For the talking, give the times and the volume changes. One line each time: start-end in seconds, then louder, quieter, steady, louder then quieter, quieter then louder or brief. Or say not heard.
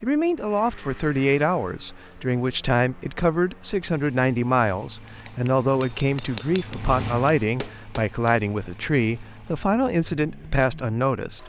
0.0-11.4 steady.